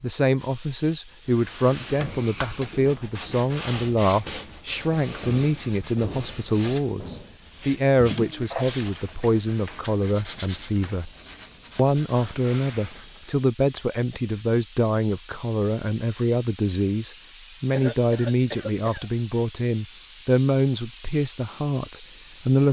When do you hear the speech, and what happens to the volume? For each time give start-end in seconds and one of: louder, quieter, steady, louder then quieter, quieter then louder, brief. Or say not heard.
0.0-11.1 steady
11.8-22.6 steady.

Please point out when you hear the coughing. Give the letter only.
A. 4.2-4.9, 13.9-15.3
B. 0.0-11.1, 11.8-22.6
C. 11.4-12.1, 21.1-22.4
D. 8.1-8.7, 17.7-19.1
D.